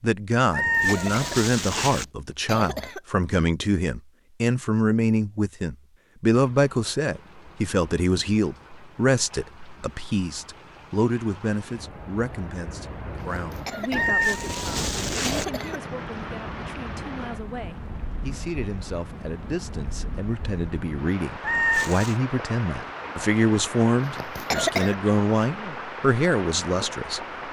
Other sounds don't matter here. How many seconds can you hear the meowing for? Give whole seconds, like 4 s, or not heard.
4 s.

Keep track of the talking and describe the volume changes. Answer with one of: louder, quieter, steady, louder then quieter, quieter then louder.
quieter then louder.